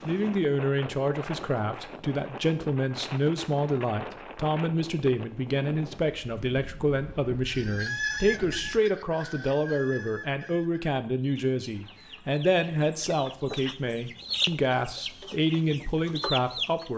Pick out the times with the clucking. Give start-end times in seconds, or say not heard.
7.5-16.9.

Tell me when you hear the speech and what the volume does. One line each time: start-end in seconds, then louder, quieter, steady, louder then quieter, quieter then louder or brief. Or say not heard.
0.1-16.9 steady.